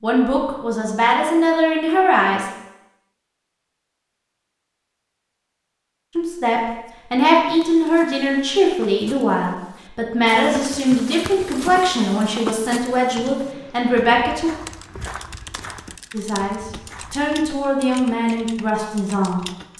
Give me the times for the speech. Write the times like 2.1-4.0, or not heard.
0.0-2.5, 6.2-14.5, 16.1-19.7.